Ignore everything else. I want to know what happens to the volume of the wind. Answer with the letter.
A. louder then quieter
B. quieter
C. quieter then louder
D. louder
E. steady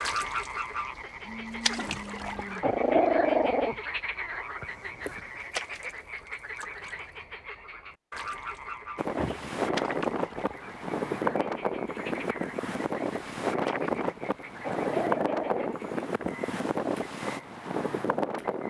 E.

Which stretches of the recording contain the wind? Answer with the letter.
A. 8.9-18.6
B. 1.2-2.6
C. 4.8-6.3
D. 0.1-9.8
A.